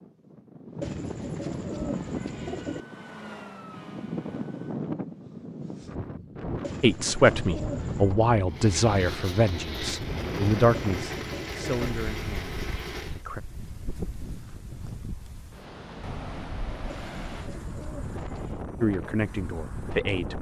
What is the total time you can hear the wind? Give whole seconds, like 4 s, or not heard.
20 s.